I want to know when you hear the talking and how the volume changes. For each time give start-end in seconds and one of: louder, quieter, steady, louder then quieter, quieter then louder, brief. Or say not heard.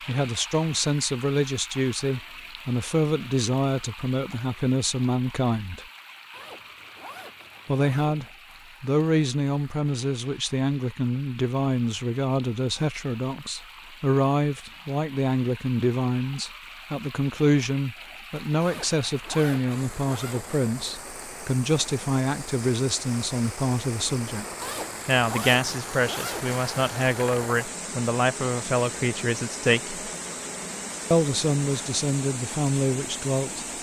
0.1-5.8 steady
7.7-24.4 steady
25.1-30.1 steady
31.1-33.7 brief.